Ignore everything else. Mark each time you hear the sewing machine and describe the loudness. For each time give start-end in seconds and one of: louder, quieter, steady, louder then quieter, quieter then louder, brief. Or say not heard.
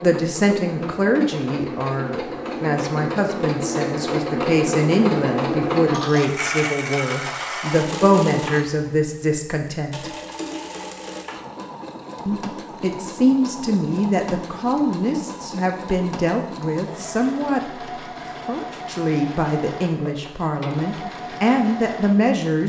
0.0-22.6 quieter.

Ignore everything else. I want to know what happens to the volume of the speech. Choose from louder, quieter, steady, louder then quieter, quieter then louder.
steady.